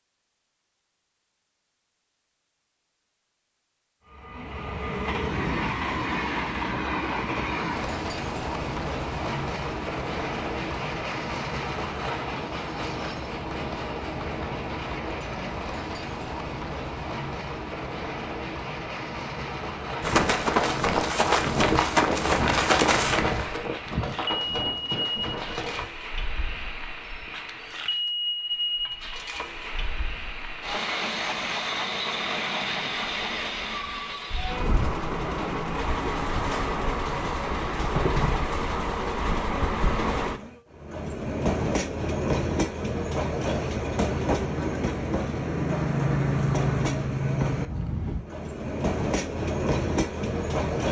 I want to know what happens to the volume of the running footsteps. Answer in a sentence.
The loudness of the running footsteps goes down.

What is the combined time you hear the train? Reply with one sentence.
You can hear the train for 47 seconds altogether.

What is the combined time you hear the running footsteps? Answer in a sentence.
You can hear the running footsteps for 6 seconds altogether.